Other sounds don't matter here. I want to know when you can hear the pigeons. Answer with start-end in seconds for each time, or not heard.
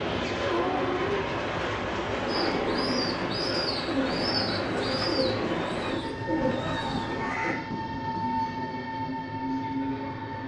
2.2-7.5.